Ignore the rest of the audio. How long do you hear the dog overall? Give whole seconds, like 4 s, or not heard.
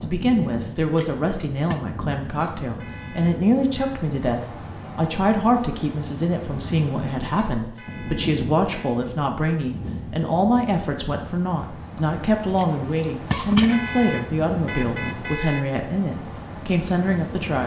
not heard.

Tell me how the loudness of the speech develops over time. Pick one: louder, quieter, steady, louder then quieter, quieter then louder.
steady.